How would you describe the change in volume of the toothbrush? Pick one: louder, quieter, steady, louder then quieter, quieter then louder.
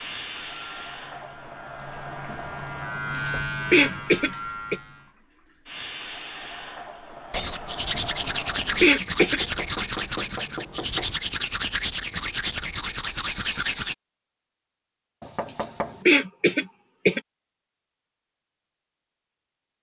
steady.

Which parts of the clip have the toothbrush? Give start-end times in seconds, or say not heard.
7.3-13.9.